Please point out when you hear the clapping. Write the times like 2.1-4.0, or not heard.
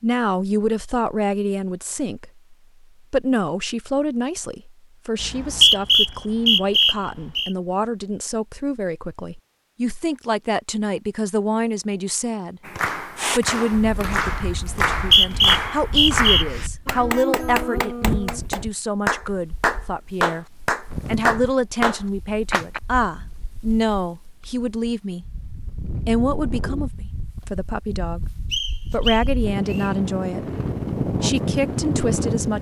12.7-22.8.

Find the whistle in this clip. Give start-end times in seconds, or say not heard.
5.2-7.5, 14.7-16.4, 28.5-29.9.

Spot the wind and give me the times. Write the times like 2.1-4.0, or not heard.
13.2-32.5.